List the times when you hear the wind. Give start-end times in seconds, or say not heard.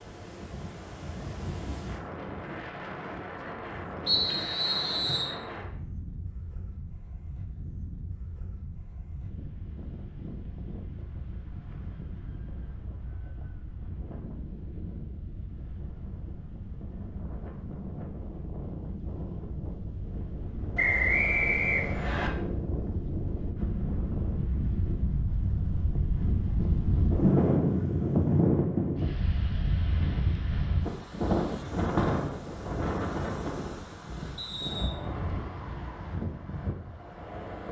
0.0-37.6.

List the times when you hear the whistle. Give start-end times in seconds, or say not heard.
4.0-5.3, 20.8-22.3, 34.4-35.0.